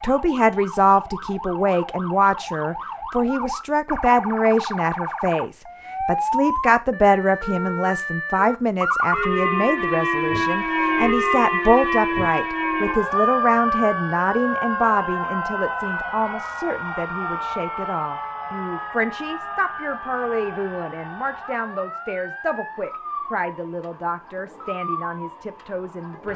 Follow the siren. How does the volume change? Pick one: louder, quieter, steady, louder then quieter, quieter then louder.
louder then quieter.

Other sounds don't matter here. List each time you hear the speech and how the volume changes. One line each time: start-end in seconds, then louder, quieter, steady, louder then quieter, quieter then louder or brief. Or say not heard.
0.0-26.3 quieter.